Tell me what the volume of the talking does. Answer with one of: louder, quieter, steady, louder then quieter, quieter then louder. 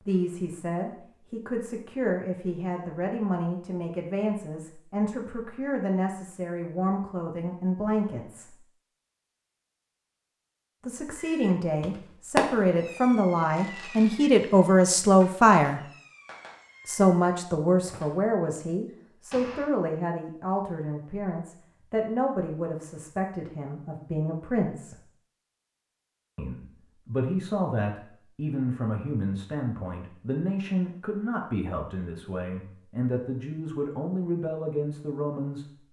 louder then quieter.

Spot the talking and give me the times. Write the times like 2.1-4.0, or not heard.
0.1-8.6, 10.8-15.8, 16.9-24.9, 26.4-35.6.